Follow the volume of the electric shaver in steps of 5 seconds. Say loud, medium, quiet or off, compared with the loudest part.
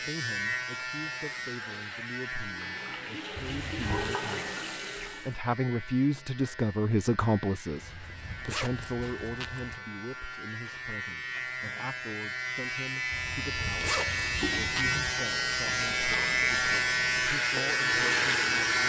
medium, quiet, medium, loud.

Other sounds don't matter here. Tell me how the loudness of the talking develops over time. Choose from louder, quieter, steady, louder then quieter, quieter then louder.
louder then quieter.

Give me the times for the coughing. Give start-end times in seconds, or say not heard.
not heard.